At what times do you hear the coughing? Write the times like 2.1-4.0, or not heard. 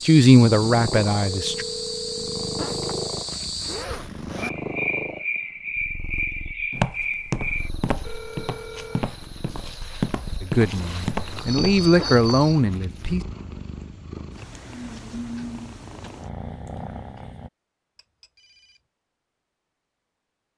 not heard.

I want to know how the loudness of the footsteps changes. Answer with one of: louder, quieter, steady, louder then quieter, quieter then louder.
quieter then louder.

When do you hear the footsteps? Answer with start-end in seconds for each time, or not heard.
6.7-11.8.